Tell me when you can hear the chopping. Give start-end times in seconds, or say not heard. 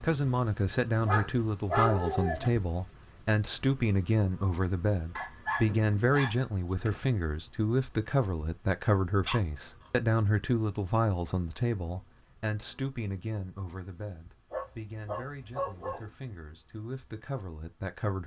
not heard.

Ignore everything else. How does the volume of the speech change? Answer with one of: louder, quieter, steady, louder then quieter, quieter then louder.
quieter.